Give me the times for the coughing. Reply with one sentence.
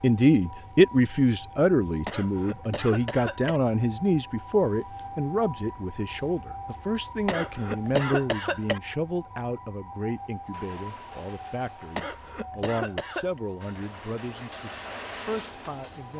You can hear the coughing from 2.0 to 3.6 s, from 7.2 to 8.8 s and from 11.9 to 13.4 s.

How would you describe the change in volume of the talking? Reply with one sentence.
The volume of the talking goes down.